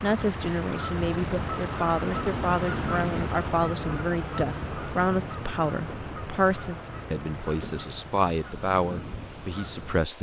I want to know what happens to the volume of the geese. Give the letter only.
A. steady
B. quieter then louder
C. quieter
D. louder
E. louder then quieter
C.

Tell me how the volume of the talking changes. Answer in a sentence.
The loudness of the talking stays about the same.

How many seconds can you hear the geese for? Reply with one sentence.
You can hear the geese for 10 seconds altogether.